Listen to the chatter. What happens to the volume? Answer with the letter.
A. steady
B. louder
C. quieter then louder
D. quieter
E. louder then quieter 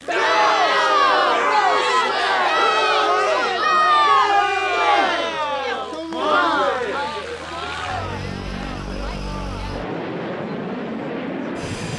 D.